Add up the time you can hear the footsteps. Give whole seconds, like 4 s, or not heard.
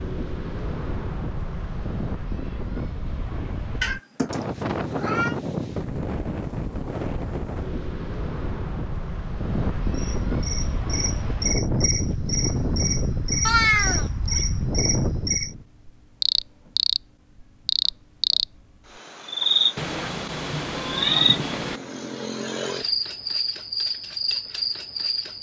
not heard.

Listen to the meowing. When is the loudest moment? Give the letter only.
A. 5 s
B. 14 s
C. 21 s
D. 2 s
B.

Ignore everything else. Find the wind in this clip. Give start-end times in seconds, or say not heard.
0.0-15.7.